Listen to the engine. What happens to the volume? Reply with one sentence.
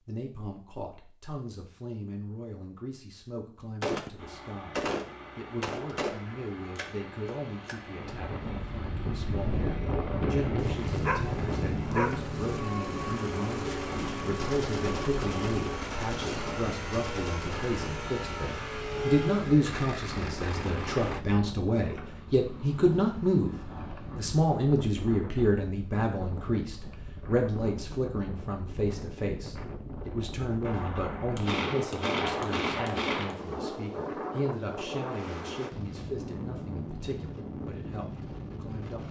The loudness of the engine goes up.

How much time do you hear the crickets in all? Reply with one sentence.
The crickets can't be heard in this clip.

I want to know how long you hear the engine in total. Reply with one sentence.
You can hear the engine for 17 seconds altogether.